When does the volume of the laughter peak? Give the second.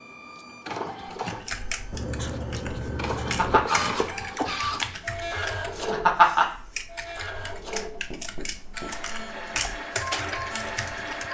6 s.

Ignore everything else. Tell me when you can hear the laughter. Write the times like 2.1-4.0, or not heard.
3.1-3.8, 5.8-6.5.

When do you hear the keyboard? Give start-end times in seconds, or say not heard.
1.1-11.2.